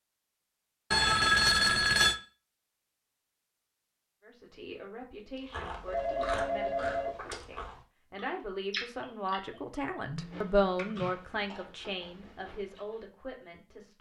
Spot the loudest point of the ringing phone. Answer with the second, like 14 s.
1 s.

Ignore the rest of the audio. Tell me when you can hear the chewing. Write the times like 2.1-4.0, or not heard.
5.5-13.1.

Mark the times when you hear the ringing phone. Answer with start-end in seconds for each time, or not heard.
0.9-2.1, 5.8-7.2, 10.0-11.1.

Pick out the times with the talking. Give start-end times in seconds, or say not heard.
4.2-13.9.